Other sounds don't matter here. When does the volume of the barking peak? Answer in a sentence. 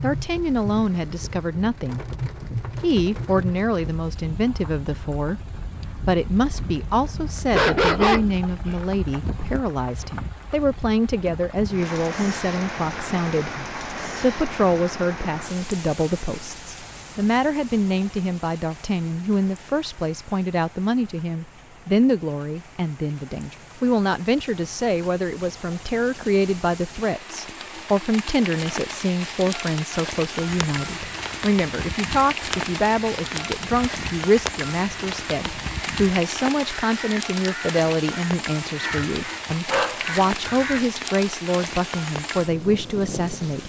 The volume of the barking peaks at 8 seconds.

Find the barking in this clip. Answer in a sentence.
The barking can be heard from 7.5 to 8.8 s and from 38.6 to 40.9 s.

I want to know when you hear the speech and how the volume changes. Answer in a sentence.
You can hear the speech from 0.0 to 43.6 s, at a steady volume.